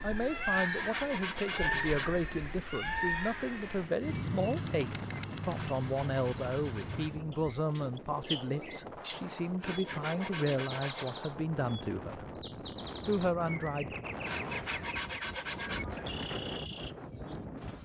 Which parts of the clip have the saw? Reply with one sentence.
The saw can be heard from 0.5 to 2.1 s, from 5.6 to 7.2 s, from 9.6 to 11.1 s and from 14.2 to 15.8 s.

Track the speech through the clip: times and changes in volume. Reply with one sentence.
You can hear the speech from 0.0 to 12.2 s, at a steady volume; and briefly from 13.1 to 13.9 s.